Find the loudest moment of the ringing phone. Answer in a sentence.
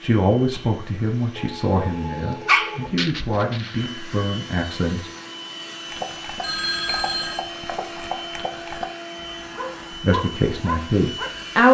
The volume of the ringing phone peaks at 7 seconds.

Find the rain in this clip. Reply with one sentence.
You can't hear the rain here.